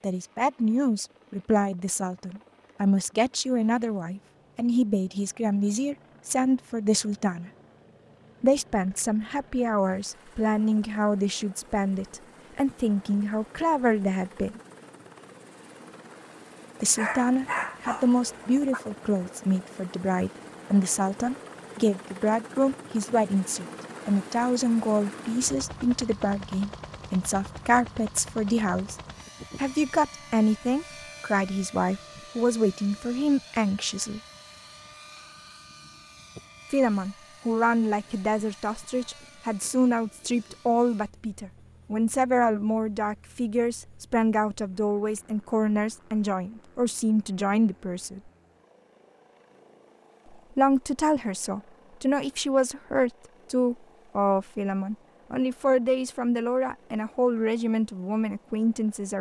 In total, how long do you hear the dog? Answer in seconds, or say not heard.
2 s.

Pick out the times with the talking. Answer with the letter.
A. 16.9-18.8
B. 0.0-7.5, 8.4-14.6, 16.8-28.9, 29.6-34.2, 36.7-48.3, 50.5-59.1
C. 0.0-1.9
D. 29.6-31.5
B.